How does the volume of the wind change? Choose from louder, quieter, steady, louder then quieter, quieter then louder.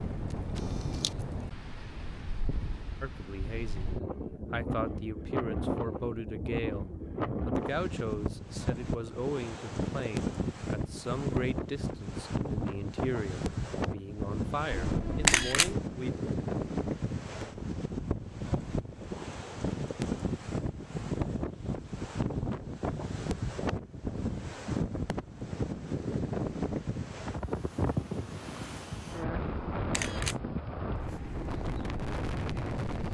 steady.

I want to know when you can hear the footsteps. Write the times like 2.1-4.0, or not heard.
30.9-33.0.